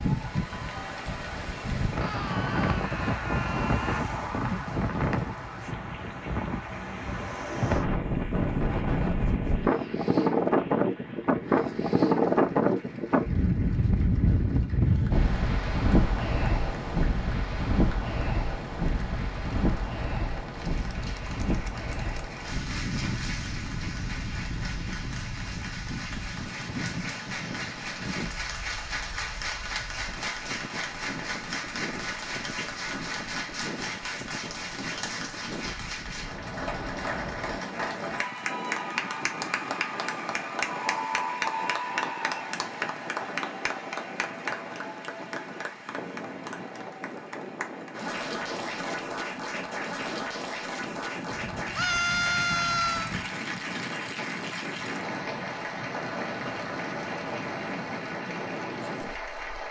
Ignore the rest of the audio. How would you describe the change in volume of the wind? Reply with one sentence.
The volume of the wind goes down.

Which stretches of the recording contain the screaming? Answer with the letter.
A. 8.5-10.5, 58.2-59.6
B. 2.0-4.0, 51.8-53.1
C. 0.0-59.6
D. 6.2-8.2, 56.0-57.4
B.